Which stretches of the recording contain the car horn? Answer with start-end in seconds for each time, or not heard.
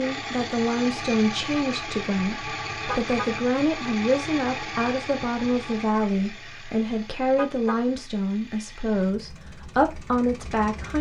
2.9-3.3, 7.3-7.8.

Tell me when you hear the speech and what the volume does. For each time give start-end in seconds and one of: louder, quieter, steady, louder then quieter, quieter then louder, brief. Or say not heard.
0.0-10.9 steady.